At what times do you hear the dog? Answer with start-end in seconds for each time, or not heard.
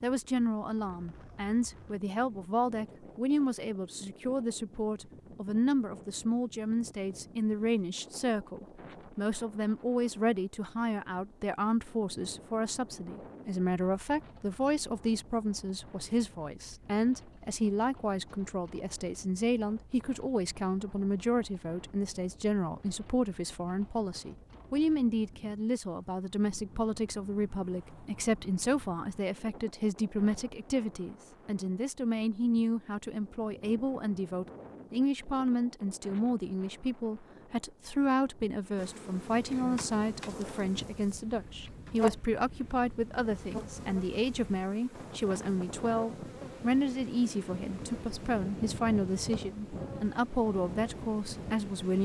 not heard.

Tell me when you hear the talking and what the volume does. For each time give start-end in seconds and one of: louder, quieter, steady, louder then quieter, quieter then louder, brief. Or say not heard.
0.0-51.9 steady.